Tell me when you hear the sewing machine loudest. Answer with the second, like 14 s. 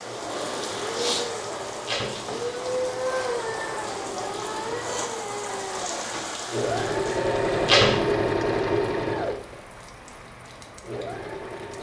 8 s.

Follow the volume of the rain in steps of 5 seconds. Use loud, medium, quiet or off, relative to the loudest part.
loud, loud, quiet.